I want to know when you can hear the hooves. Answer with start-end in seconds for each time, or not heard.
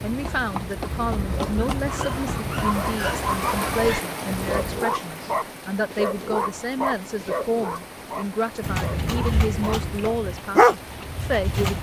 0.0-4.8, 8.6-11.7.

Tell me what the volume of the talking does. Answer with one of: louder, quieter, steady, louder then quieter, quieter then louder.
steady.